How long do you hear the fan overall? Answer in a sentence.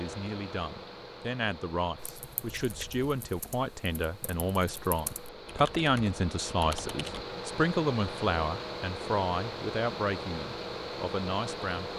The fan can be heard for 12 seconds in total.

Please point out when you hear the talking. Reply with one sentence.
You can hear the talking from 0.0 to 11.9 s.